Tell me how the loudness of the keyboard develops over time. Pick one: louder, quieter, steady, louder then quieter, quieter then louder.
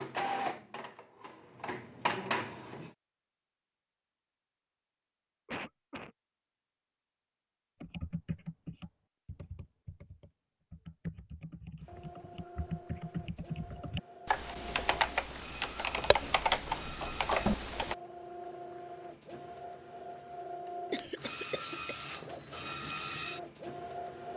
louder.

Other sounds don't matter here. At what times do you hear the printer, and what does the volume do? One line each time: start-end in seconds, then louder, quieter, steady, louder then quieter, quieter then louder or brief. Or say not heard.
0.0-3.0 brief
11.8-24.3 louder.